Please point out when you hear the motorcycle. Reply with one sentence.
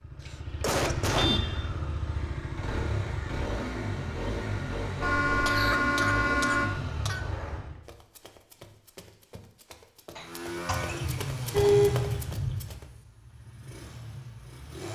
The motorcycle can be heard from 0.0 to 7.8 s and from 10.1 to 14.9 s.